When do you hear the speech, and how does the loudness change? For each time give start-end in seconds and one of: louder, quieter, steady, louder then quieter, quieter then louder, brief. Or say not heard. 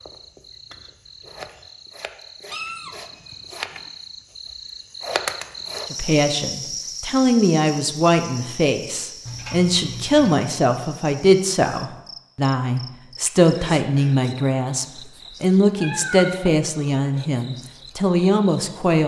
5.9-19.0 steady.